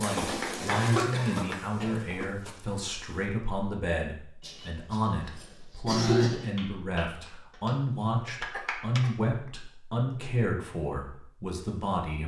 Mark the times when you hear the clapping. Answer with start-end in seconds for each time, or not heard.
0.0-1.6, 6.4-9.0.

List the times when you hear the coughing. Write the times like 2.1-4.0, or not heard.
0.7-1.9, 4.4-6.5, 8.4-9.1.